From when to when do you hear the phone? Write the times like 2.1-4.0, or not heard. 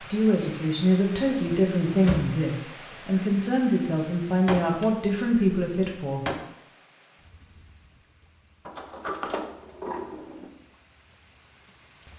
not heard.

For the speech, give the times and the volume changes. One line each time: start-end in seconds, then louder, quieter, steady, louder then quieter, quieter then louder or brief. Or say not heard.
0.1-6.2 steady.